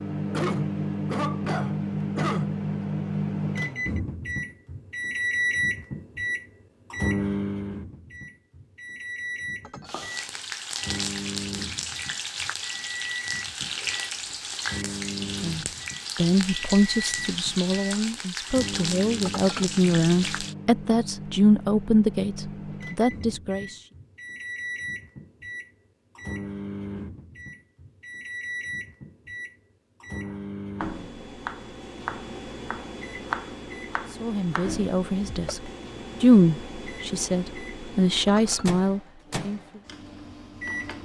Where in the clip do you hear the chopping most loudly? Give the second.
33 s.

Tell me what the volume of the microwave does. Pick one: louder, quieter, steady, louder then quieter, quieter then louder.
quieter.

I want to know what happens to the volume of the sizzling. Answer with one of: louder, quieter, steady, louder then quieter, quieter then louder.
steady.